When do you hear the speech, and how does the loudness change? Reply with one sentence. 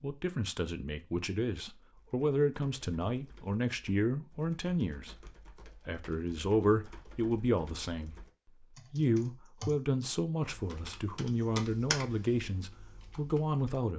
The speech can be heard from 0.0 to 13.9 s, at a steady volume.